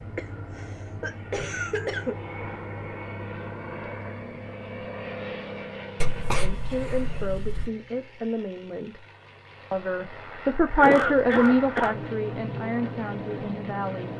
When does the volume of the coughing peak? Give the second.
11 s.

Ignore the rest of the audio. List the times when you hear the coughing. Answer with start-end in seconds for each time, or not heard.
0.1-2.1, 6.0-7.7, 10.8-11.9.